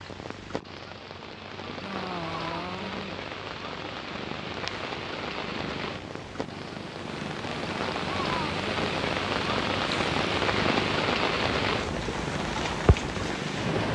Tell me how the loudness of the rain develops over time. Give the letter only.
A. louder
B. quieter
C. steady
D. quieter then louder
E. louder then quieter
A.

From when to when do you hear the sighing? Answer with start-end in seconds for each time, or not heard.
1.8-3.1.